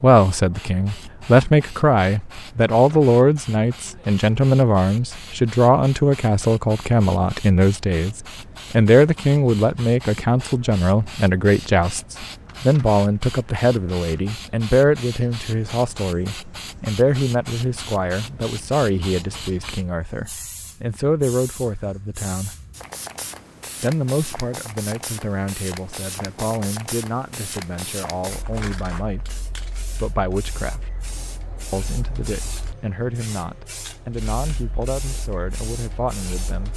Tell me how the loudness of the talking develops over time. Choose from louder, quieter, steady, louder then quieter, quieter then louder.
quieter.